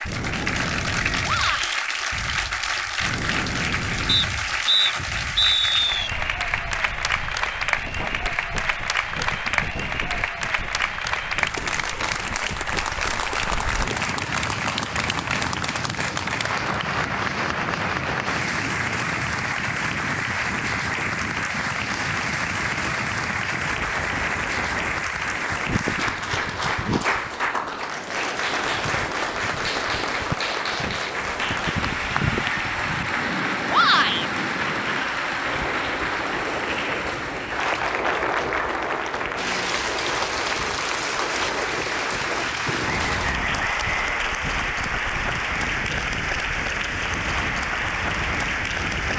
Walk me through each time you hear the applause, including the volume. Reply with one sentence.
The applause can be heard from 0.0 to 49.1 s, at a steady volume.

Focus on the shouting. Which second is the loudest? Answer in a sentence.
The loudest moment of the shouting is at 34 seconds.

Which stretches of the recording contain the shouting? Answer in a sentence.
The shouting can be heard from 1.2 to 1.8 s and from 33.7 to 34.3 s.